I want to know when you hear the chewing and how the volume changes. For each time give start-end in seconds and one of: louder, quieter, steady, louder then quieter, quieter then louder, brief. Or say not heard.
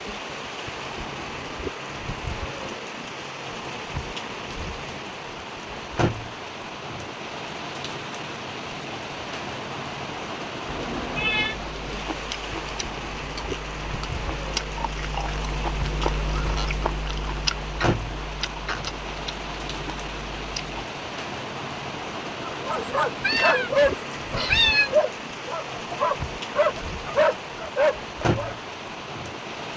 11.6-20.8 louder then quieter.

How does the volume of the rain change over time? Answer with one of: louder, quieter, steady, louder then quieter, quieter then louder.
steady.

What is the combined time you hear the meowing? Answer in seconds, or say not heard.
3 s.